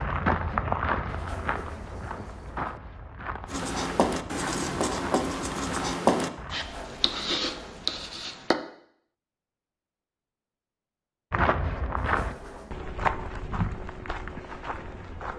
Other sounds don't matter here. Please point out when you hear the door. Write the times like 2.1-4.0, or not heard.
1.1-2.8, 6.5-8.2, 11.9-12.8.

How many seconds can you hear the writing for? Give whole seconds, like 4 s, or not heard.
5 s.